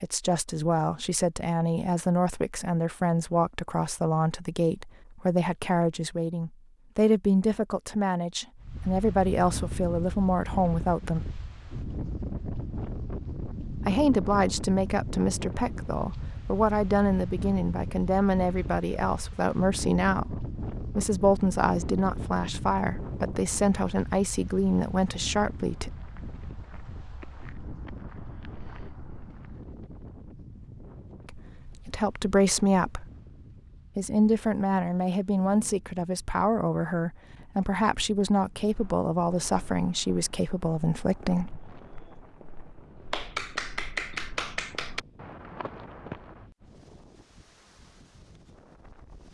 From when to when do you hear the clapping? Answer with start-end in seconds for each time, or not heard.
43.1-45.0.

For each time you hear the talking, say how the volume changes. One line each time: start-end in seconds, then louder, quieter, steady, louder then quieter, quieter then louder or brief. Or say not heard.
0.0-11.2 steady
13.8-25.9 steady
31.2-33.1 brief
34.0-41.5 steady.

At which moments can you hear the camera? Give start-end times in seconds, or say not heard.
not heard.